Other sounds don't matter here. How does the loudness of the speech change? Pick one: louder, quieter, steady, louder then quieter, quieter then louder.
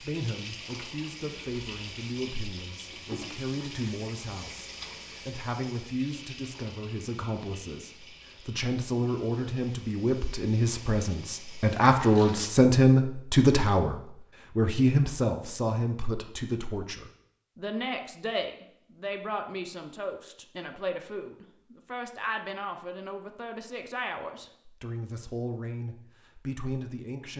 louder then quieter.